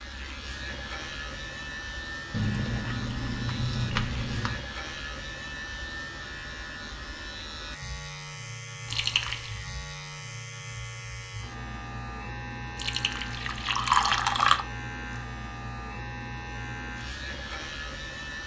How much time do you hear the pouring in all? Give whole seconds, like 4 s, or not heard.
5 s.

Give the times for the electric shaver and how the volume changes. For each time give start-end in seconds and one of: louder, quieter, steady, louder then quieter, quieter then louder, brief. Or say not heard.
0.0-18.4 steady.